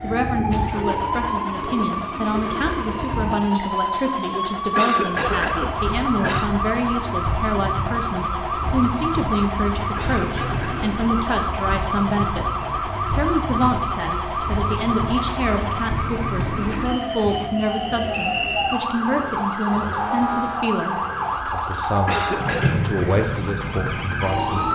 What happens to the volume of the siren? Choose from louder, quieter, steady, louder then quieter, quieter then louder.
steady.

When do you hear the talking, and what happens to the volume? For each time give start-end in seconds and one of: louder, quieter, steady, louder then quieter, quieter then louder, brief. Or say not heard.
0.0-24.7 steady.